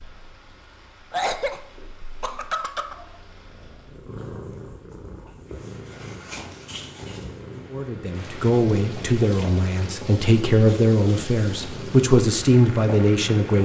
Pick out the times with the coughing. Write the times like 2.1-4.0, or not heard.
1.1-3.0.